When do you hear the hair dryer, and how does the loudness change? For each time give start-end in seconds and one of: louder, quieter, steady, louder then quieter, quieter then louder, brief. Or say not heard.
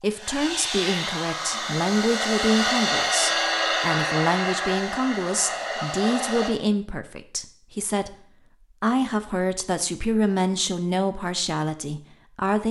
0.1-6.5 louder then quieter.